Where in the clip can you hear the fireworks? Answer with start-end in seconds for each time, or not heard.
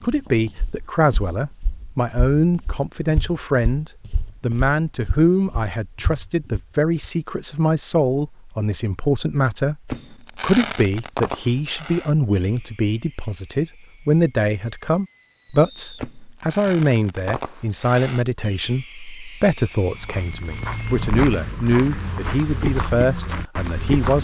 9.8-21.1.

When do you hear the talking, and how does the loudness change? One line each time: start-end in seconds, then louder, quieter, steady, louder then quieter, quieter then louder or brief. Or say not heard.
0.0-24.1 steady.